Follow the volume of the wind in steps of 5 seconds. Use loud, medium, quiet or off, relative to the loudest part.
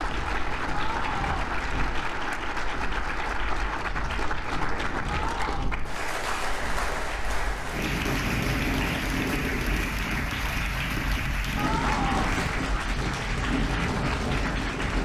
medium, loud, loud.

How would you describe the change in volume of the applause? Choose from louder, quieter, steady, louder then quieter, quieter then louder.
steady.